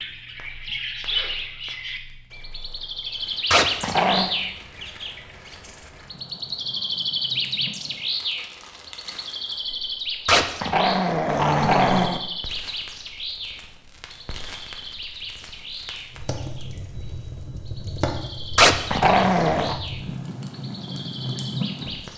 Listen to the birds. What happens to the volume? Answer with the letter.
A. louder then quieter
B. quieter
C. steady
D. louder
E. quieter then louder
B.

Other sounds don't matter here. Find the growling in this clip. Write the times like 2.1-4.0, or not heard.
3.5-4.3, 10.2-12.2, 18.6-19.8.